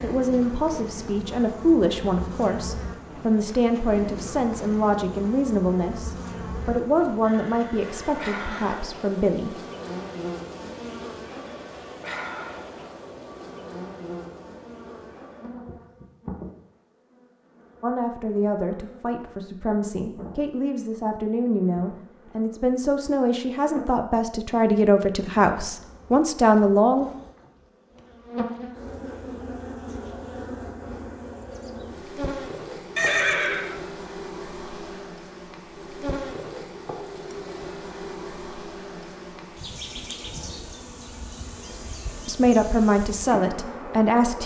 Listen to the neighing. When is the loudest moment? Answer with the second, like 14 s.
33 s.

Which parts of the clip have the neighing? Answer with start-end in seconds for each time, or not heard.
7.2-8.9, 33.0-33.8.